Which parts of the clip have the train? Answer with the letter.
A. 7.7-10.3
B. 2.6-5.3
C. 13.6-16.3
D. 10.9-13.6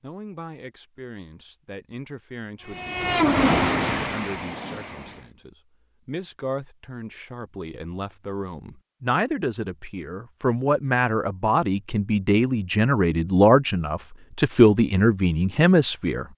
B.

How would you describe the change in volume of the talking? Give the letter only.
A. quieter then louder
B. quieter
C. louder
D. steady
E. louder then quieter
C.